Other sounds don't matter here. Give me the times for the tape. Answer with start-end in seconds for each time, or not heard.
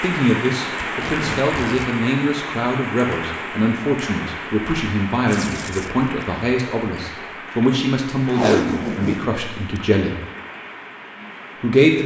0.8-1.9, 5.2-5.9, 8.3-9.8.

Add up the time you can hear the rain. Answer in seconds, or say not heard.
12 s.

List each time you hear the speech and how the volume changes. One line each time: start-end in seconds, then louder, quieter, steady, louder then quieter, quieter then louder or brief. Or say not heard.
0.0-10.2 steady
11.6-12.0 brief.